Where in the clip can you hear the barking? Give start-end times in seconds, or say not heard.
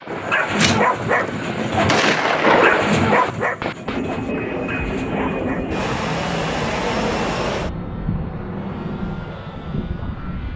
0.1-5.8.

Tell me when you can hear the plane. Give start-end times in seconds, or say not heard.
0.0-10.5.